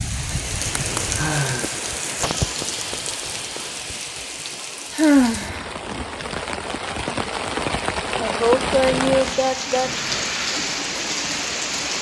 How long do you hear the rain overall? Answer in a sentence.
You can hear the rain for 12 seconds altogether.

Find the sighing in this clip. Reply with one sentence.
You can hear the sighing from 1.1 to 1.8 s, from 4.9 to 5.7 s and from 8.2 to 9.9 s.